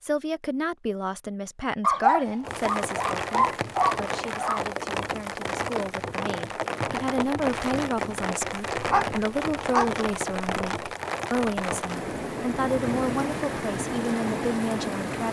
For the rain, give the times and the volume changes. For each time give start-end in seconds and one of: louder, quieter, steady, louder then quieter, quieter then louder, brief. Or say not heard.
2.4-15.2 steady.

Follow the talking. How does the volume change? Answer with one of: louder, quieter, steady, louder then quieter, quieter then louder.
quieter then louder.